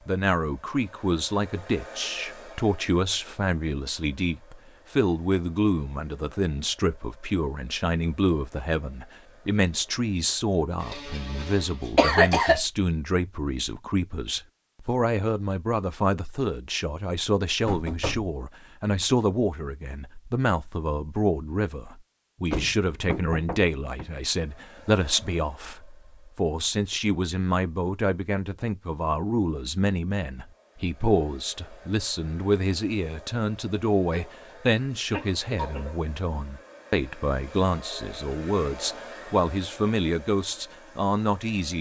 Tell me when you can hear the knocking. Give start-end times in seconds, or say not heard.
17.6-18.4, 22.5-24.1.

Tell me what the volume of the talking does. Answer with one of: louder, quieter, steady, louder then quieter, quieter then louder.
steady.